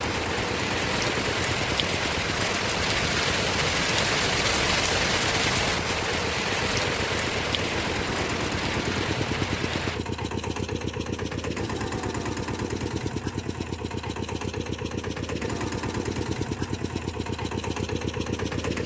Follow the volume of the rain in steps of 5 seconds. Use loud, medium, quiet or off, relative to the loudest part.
loud, loud, off, off.